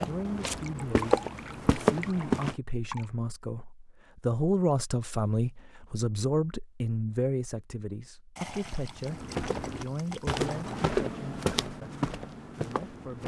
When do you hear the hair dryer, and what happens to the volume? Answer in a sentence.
The hair dryer can't be heard in this clip.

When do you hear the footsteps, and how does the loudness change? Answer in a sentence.
The footsteps can be heard briefly from 0.0 to 2.5 s; and from 9.1 to 13.2 s, getting louder then quieter.